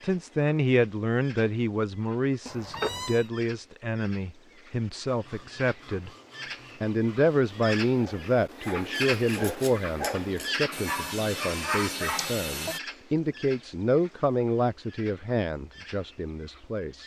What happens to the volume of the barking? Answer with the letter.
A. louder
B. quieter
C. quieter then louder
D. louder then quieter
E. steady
A.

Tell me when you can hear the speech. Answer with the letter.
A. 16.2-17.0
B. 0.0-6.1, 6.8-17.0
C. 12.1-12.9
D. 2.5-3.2
B.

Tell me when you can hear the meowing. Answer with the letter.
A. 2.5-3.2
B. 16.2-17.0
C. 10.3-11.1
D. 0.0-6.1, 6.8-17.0
A.